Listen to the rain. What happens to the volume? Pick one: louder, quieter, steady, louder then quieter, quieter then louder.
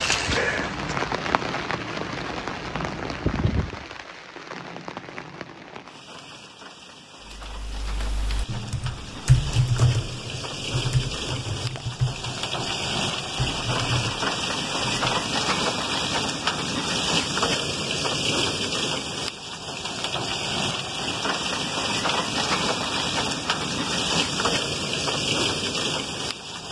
quieter then louder.